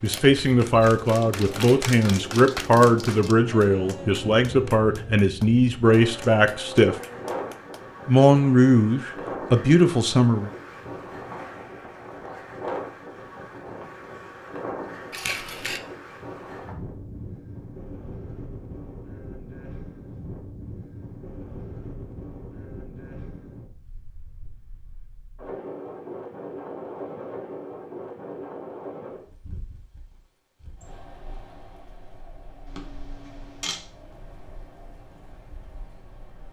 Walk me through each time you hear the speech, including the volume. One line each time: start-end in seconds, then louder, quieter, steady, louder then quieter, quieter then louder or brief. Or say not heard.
0.0-7.0 steady
8.1-10.5 brief.